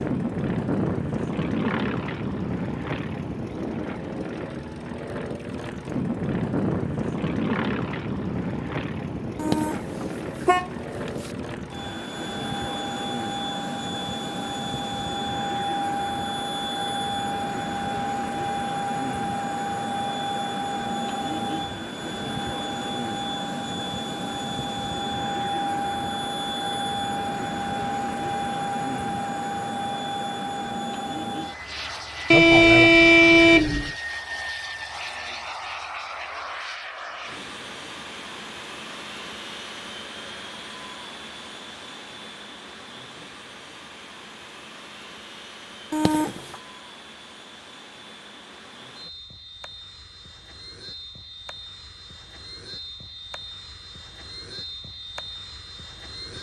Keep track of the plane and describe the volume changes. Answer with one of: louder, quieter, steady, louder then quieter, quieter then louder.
quieter.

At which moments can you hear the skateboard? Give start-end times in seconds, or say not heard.
not heard.